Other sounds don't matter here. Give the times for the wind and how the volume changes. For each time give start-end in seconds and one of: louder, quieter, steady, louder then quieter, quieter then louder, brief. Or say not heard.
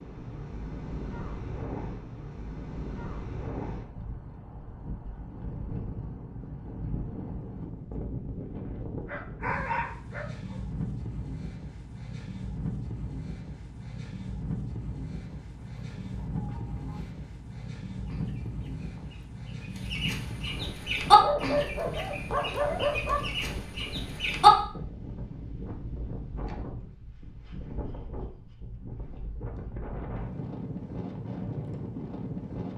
0.0-32.7 steady.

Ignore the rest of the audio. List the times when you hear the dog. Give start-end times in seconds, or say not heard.
9.1-10.6, 21.1-23.5.